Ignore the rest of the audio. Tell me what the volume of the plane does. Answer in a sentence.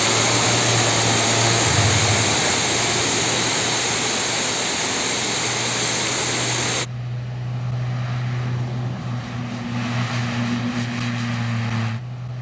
The volume of the plane goes down, then up.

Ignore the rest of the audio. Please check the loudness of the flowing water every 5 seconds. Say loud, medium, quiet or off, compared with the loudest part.
loud, loud, off.